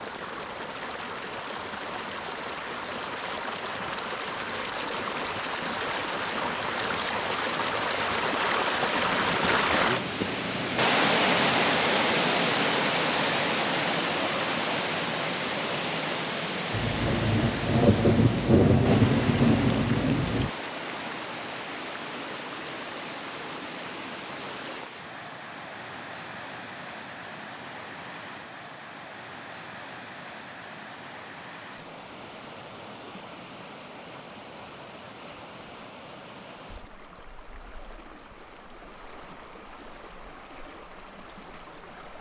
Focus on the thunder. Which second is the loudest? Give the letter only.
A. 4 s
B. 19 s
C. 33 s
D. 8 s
B.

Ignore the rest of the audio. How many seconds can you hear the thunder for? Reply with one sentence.
You can hear the thunder for 4 seconds altogether.